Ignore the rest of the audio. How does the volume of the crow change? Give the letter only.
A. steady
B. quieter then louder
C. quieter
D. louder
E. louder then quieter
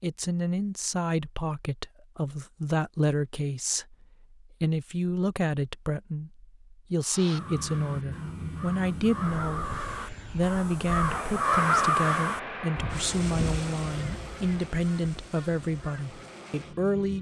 E.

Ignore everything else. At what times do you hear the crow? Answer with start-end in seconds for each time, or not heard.
7.0-16.4.